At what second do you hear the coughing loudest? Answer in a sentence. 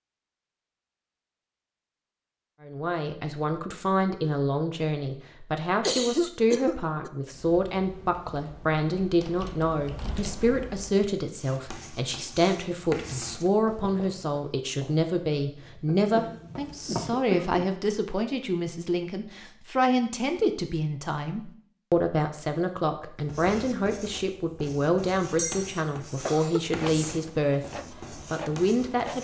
The volume of the coughing peaks at 6 seconds.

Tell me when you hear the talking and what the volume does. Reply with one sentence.
The talking can be heard from 2.6 to 29.1 s, at a steady volume.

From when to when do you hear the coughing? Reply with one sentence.
You can hear the coughing from 5.8 to 7.1 s, from 15.8 to 17.8 s and from 25.4 to 26.6 s.